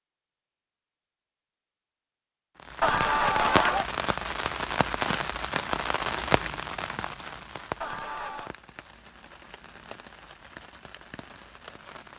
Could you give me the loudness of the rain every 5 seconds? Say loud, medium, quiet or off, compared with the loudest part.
loud, loud, quiet.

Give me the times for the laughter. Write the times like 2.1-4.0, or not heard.
2.8-3.9, 7.8-8.6.